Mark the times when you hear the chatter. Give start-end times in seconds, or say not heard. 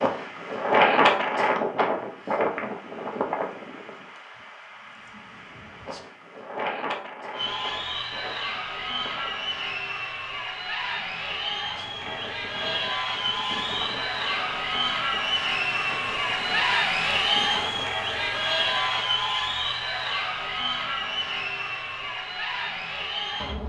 7.3-23.6.